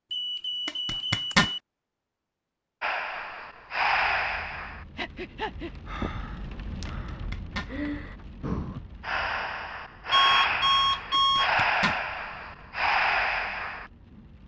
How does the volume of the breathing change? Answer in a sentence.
The volume of the breathing goes down, then up.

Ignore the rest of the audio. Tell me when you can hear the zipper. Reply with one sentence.
You can hear the zipper from 0.7 to 1.5 s, from 6.8 to 7.7 s and from 11.2 to 12.0 s.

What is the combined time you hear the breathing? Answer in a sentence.
The breathing can be heard for 11 seconds in total.